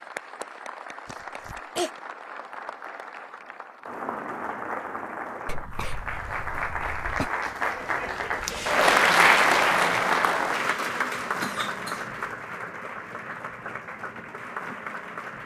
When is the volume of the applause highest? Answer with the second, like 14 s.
9 s.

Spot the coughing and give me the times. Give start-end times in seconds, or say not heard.
1.1-1.9, 5.5-7.3, 11.4-12.1.